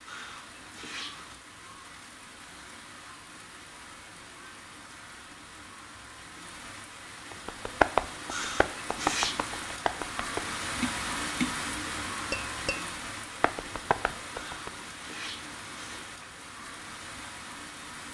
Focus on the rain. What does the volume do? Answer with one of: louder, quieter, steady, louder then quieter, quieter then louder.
louder then quieter.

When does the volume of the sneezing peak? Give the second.
9 s.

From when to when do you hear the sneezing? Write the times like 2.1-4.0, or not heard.
0.1-1.4, 8.3-9.4, 14.3-16.2.